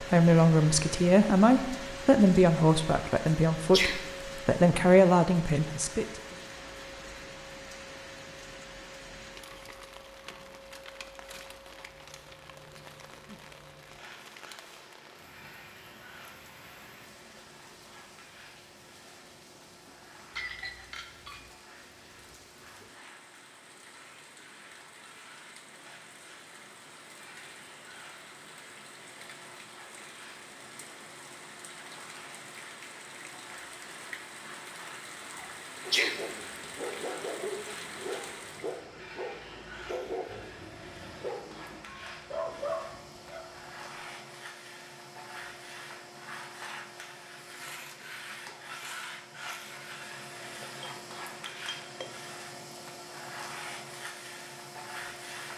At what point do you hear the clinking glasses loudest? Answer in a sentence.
The loudest moment of the clinking glasses is at 21 seconds.